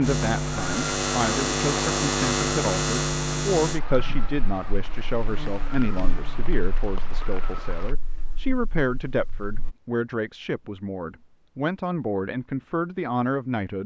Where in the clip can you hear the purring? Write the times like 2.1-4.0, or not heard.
not heard.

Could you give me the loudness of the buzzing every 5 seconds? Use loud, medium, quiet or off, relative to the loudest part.
loud, quiet, off.